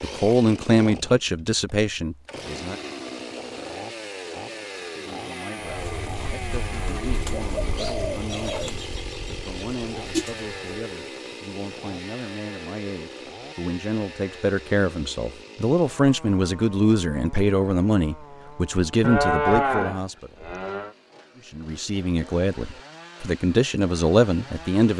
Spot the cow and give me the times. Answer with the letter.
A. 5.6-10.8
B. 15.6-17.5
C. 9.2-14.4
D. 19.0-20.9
D.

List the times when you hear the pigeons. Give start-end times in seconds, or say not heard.
5.6-10.8.